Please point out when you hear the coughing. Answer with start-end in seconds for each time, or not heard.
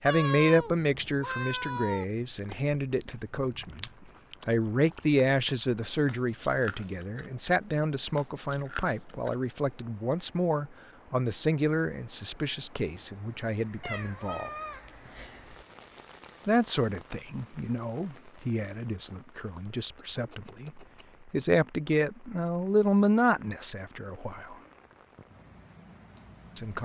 not heard.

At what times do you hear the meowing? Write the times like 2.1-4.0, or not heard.
0.1-2.0, 13.8-15.7, 20.1-21.1.